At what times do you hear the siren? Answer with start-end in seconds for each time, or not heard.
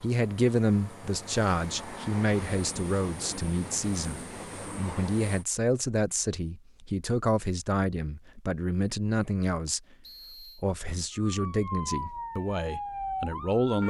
11.2-13.8.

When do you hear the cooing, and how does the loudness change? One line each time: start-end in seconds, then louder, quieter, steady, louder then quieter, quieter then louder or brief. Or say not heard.
not heard.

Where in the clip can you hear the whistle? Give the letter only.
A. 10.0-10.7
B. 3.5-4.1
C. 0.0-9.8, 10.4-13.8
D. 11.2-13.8
A.